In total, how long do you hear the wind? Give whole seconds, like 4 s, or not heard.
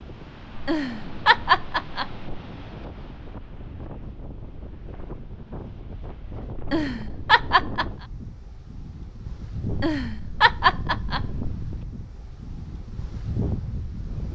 14 s.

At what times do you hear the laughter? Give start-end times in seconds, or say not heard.
0.6-2.2, 6.5-8.1, 9.7-11.4.